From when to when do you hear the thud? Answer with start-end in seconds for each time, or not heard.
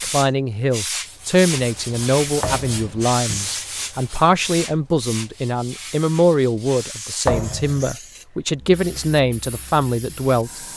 2.4-3.0, 7.2-7.9.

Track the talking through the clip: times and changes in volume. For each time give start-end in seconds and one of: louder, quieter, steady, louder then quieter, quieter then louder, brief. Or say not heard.
0.0-10.7 steady.